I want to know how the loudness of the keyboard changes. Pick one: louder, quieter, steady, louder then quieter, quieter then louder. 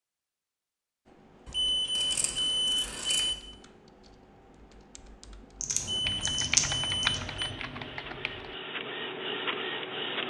louder.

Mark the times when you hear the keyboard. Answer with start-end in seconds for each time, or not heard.
1.1-8.6.